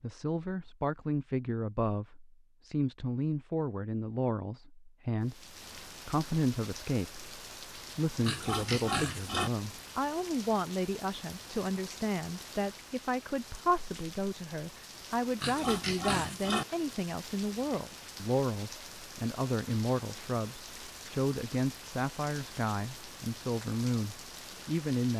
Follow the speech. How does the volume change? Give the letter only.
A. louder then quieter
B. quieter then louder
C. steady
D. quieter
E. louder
C.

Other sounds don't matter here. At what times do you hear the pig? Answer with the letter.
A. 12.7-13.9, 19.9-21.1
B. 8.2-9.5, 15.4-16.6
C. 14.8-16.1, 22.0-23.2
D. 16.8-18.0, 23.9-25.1
B.